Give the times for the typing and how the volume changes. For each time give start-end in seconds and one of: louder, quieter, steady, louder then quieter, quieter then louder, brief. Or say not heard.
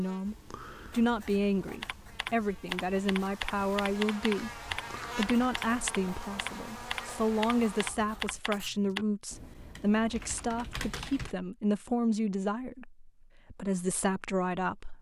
1.8-11.3 quieter.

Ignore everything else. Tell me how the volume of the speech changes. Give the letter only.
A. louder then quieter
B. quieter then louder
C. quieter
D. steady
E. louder
D.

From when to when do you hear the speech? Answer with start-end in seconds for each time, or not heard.
0.0-14.9.